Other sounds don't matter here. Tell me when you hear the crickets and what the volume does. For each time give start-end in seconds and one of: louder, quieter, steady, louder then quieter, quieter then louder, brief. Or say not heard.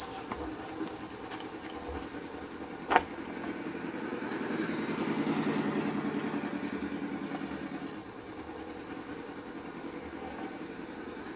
0.0-11.3 quieter then louder.